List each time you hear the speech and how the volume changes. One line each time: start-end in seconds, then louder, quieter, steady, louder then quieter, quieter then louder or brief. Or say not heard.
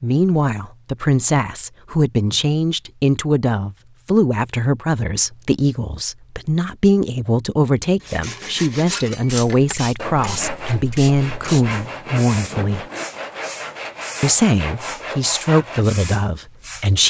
0.0-12.8 steady
14.2-17.0 brief.